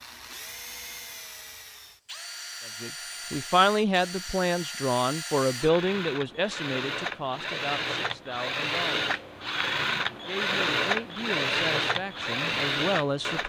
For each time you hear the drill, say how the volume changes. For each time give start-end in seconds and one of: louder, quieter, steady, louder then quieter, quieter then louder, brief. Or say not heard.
0.0-13.4 louder.